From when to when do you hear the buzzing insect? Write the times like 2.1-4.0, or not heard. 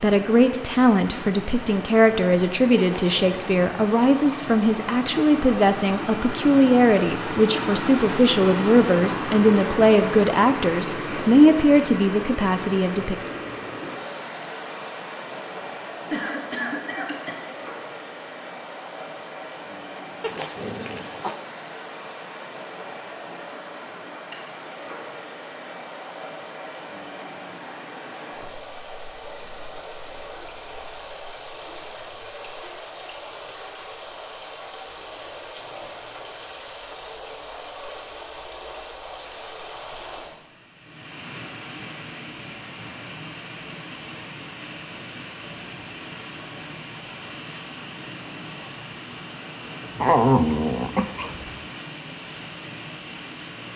not heard.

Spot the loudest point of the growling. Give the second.
50 s.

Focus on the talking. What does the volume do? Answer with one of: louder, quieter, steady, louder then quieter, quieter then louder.
steady.